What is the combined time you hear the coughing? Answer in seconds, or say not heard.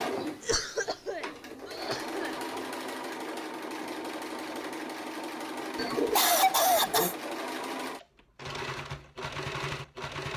3 s.